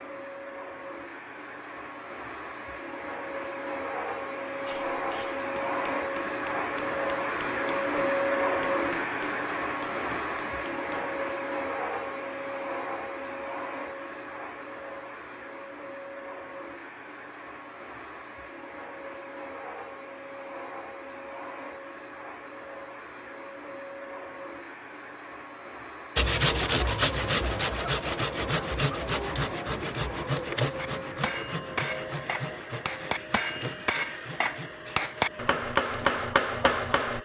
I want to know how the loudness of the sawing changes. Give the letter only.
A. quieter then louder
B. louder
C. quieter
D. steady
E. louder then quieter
C.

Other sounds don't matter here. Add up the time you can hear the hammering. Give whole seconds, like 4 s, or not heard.
13 s.